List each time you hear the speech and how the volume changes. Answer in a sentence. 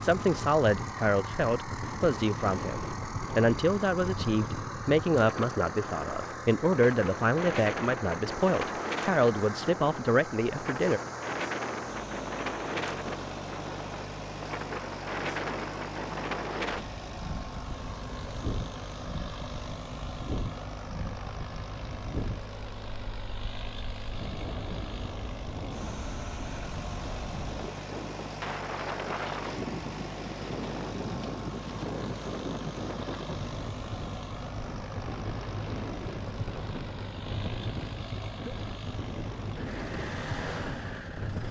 The speech can be heard from 0.0 to 11.0 s, at a steady volume.